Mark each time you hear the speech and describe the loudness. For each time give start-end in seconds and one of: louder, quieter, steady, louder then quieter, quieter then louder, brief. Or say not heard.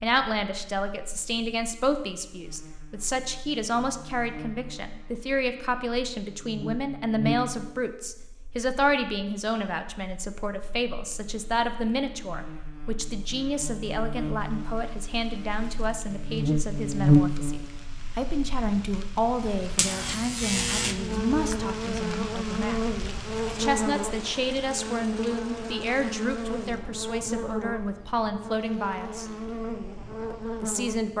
0.0-29.3 steady
30.3-31.1 brief.